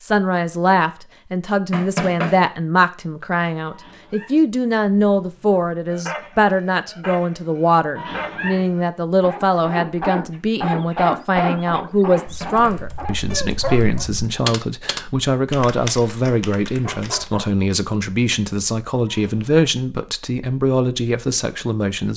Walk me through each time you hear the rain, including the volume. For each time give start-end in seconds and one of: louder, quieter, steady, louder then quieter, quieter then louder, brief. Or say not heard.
not heard.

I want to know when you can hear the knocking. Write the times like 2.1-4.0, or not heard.
1.7-2.4, 12.2-12.8, 16.8-17.6.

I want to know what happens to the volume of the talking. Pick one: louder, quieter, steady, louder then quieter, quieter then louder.
steady.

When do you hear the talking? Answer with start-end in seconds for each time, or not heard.
0.0-22.1.